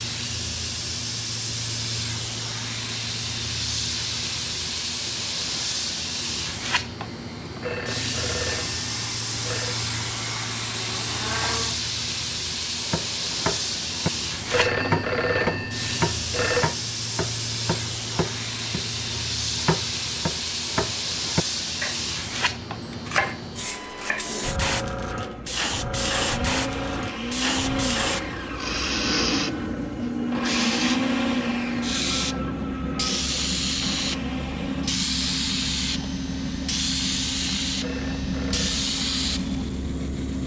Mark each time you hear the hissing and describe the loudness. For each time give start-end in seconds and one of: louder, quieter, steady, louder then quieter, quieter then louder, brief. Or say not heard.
0.0-40.4 steady.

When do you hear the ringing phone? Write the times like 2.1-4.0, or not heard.
7.6-9.8, 14.5-16.7, 37.8-38.9.